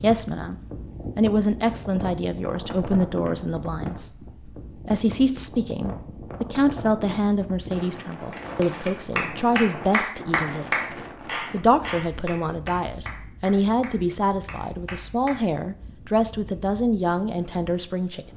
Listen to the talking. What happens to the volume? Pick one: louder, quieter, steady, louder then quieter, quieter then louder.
steady.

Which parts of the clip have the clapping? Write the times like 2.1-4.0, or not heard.
8.3-15.4.